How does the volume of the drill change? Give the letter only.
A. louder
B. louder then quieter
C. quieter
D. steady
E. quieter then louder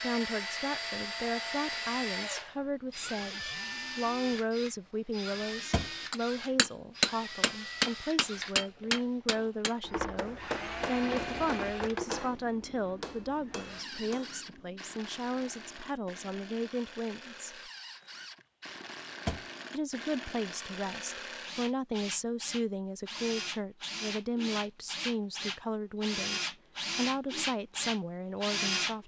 E.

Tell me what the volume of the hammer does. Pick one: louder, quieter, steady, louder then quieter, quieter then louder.
quieter.